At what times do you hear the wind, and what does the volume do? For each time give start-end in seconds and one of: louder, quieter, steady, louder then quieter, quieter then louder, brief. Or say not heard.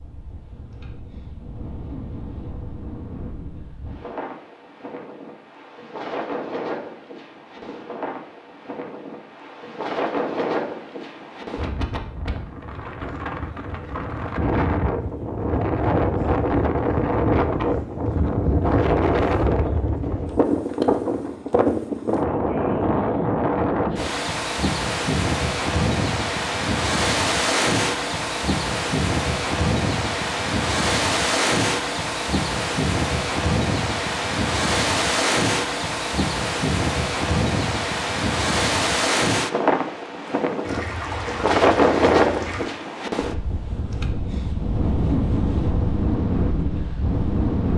0.0-47.7 louder.